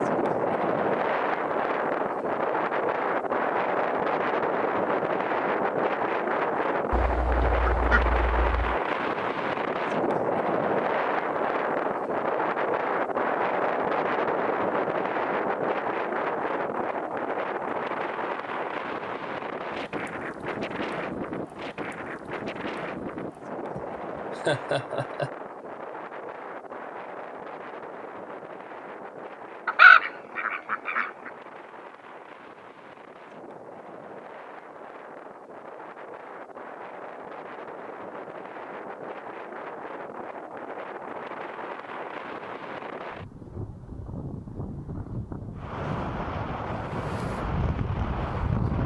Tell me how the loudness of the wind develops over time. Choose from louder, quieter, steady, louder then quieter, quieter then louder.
quieter then louder.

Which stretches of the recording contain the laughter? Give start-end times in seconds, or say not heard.
23.8-25.3.